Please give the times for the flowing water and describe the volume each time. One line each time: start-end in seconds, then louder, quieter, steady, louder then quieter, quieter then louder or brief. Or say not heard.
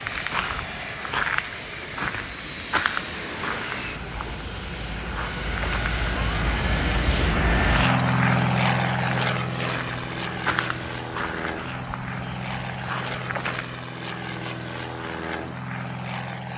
not heard.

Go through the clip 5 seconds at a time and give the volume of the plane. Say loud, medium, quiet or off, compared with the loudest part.
medium, loud, medium, medium.